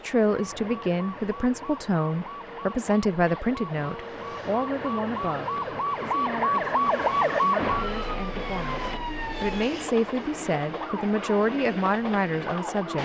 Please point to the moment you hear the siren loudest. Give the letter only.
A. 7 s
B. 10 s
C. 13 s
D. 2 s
A.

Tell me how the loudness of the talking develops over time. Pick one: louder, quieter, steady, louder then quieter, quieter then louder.
quieter then louder.